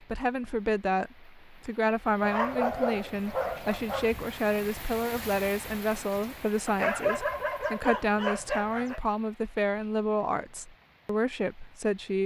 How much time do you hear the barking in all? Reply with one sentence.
The barking can be heard for 4 seconds in total.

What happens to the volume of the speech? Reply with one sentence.
The loudness of the speech stays about the same.